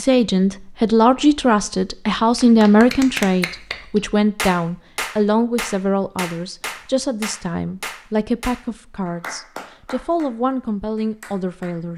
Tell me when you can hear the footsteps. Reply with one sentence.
You can't hear the footsteps here.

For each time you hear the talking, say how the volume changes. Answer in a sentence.
You can hear the talking from 0.0 to 11.9 s, getting quieter.